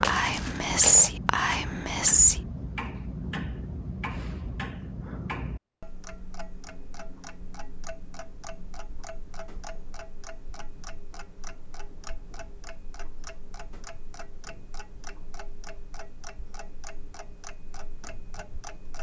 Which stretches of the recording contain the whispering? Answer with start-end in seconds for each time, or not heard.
0.0-2.4.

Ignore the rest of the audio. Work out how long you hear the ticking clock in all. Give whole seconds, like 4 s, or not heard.
19 s.